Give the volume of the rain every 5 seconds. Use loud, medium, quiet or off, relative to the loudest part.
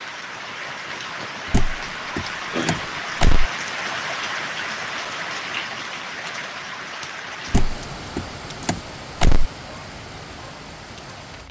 loud, loud, medium.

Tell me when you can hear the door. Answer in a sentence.
The door can be heard from 1.5 to 3.5 s and from 7.5 to 9.5 s.